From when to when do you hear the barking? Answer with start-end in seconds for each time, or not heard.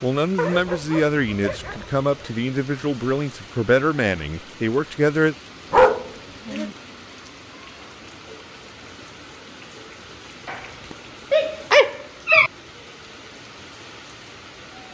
0.3-2.4, 5.7-6.8, 10.4-12.5.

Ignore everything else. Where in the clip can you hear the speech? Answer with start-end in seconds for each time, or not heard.
0.0-5.3.